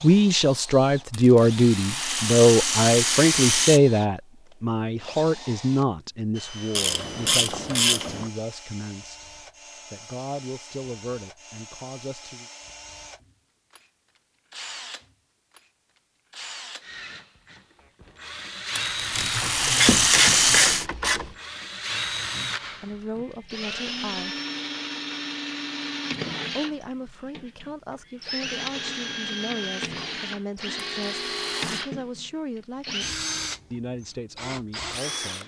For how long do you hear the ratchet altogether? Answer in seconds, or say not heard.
4 s.